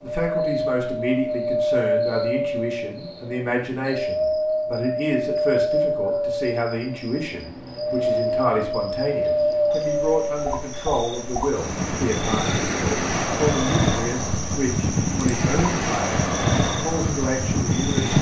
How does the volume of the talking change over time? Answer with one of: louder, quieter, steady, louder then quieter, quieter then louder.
steady.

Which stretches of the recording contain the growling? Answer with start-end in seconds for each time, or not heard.
not heard.